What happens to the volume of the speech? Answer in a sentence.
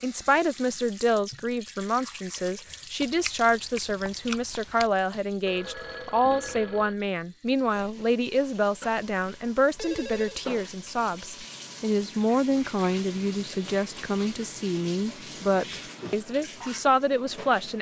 The volume of the speech stays about the same.